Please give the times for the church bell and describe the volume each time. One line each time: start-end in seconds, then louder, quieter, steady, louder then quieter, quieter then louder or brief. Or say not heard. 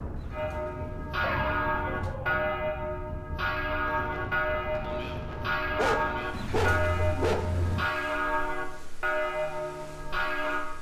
0.3-10.7 steady.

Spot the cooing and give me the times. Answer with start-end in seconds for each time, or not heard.
0.1-2.1, 6.3-7.9.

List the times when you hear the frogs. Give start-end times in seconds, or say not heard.
not heard.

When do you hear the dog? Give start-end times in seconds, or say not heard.
1.2-2.7, 5.8-7.5.